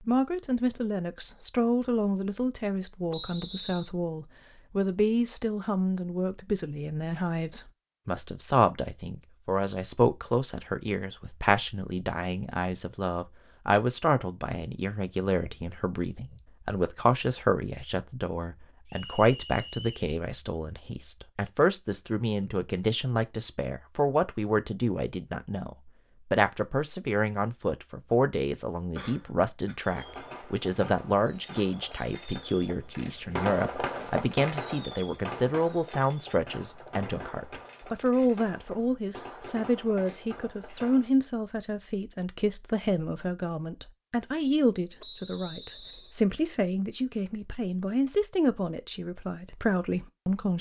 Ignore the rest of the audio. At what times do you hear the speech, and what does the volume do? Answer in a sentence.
The speech can be heard from 0.0 to 50.5 s, at a steady volume.